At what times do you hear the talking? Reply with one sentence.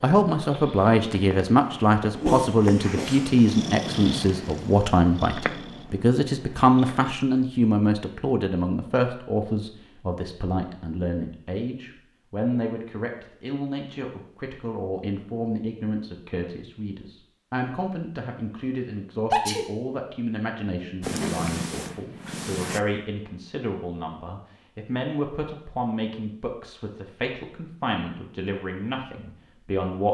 You can hear the talking from 0.0 to 30.1 s.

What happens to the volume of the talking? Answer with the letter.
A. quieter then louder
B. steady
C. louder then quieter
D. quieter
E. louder
D.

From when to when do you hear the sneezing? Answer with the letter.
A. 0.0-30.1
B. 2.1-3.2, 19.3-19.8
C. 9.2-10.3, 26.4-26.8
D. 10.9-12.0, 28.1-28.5
B.